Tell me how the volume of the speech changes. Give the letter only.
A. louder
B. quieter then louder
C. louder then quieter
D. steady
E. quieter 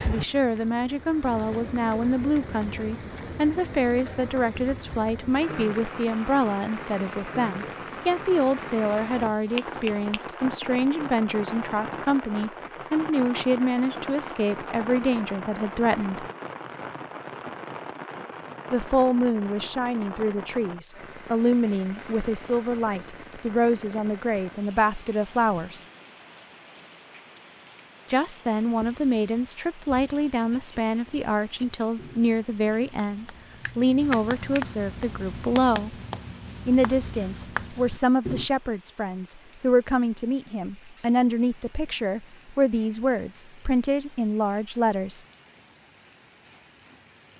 D.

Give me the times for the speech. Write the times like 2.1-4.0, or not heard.
0.1-16.2, 18.7-25.8, 28.1-36.0, 36.6-45.2.